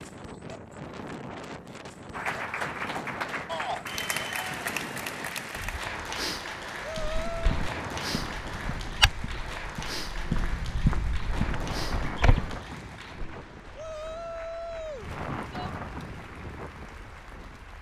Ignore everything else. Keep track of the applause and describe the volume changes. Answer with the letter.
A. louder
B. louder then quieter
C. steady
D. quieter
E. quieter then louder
D.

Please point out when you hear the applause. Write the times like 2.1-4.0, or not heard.
2.1-17.7.